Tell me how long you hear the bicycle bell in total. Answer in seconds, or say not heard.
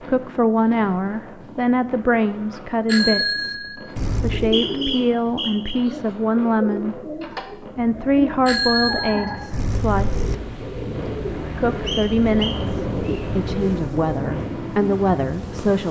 4 s.